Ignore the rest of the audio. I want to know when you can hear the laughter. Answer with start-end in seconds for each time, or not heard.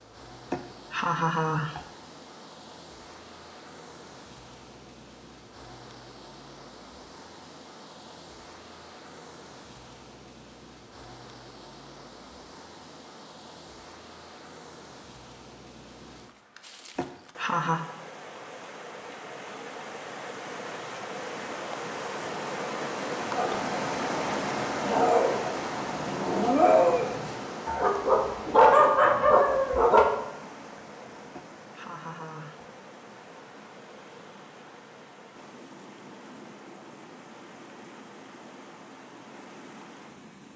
0.5-1.8, 16.9-17.9, 31.4-32.6.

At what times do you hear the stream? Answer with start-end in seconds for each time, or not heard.
0.0-40.5.